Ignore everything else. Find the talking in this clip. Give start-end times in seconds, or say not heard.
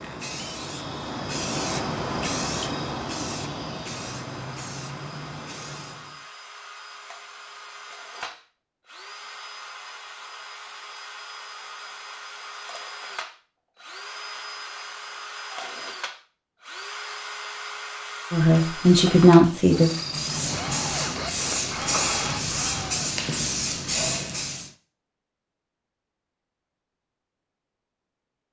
18.3-19.9.